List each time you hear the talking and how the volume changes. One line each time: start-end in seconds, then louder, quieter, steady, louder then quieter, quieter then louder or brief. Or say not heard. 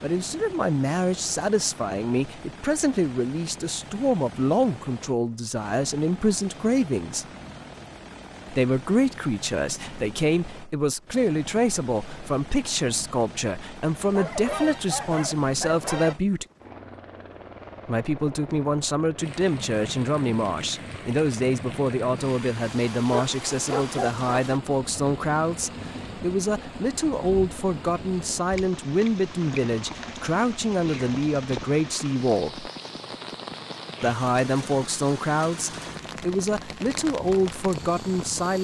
0.0-7.2 steady
8.5-16.4 steady
17.9-32.7 steady
34.0-38.5 steady.